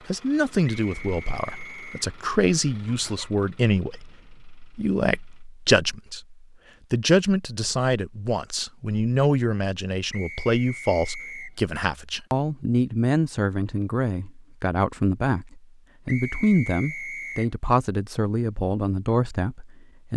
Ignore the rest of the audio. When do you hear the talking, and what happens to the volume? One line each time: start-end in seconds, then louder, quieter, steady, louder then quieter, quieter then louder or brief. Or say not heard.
0.1-20.1 steady.